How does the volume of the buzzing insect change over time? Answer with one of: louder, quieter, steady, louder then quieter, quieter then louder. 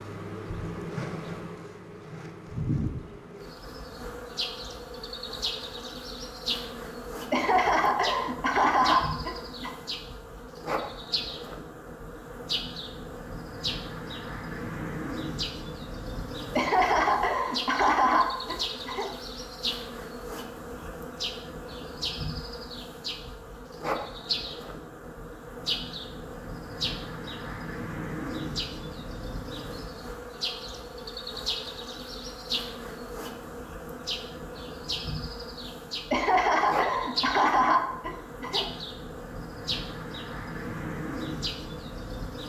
steady.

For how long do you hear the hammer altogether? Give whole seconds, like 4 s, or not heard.
not heard.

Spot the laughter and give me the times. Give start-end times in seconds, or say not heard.
7.3-9.7, 16.6-19.1, 36.1-38.6.